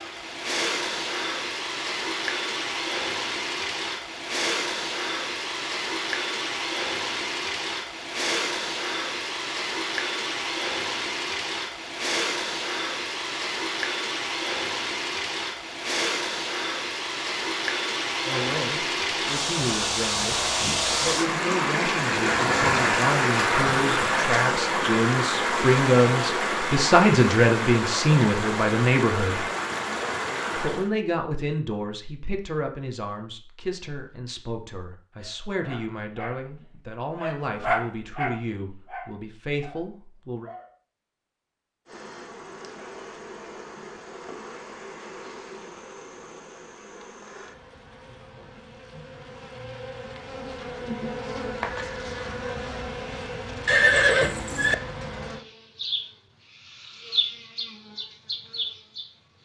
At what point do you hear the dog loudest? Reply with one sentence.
The volume of the dog peaks at 38 seconds.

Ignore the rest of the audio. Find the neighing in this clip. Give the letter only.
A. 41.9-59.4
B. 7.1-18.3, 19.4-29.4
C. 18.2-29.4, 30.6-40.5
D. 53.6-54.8
D.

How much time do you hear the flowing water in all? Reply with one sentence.
You can hear the flowing water for 31 seconds altogether.